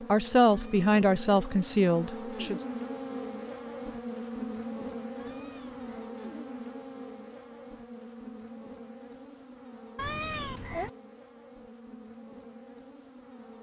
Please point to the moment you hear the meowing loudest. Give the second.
10 s.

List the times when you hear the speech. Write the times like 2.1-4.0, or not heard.
0.1-2.6.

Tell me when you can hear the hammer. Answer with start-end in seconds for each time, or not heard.
not heard.